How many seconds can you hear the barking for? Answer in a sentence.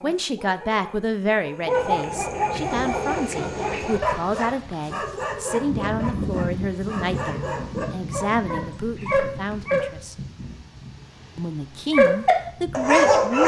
The barking can be heard for 11 seconds in total.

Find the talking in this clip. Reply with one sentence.
The talking can be heard from 0.0 to 10.2 s and from 11.3 to 13.4 s.